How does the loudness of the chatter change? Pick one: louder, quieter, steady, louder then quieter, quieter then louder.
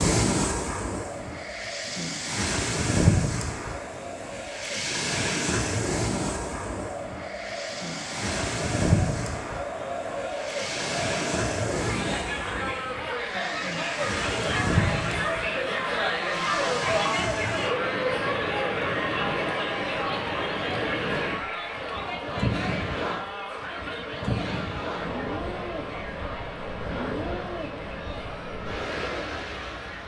louder then quieter.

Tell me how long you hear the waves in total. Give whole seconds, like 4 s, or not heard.
30 s.